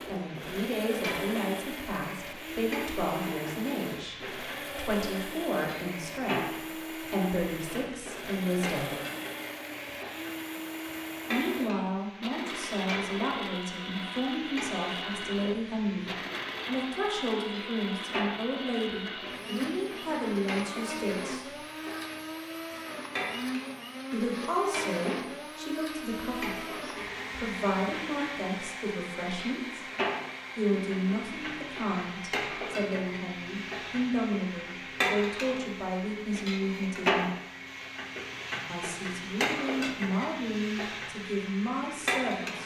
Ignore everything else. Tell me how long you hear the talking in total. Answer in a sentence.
The talking can be heard for 36 seconds in total.